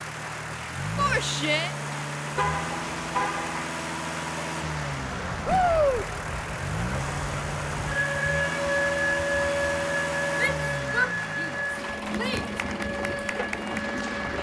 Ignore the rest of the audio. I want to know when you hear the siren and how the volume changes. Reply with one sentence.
You can hear the siren from 5.0 to 14.3 s, getting louder then quieter.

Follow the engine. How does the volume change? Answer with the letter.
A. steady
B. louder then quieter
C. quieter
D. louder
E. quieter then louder
A.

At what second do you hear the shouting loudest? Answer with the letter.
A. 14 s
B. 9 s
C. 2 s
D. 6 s
D.